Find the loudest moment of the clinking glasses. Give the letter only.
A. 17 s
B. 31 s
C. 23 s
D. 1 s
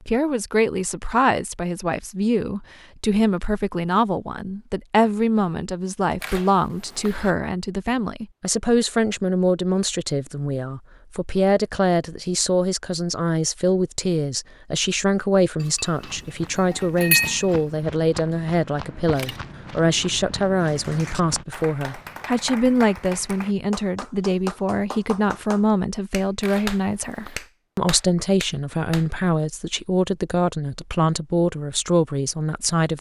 A.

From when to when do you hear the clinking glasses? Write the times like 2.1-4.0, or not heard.
15.6-16.1, 16.7-17.4.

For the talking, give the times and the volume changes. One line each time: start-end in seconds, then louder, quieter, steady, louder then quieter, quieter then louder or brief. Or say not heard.
0.1-32.9 steady.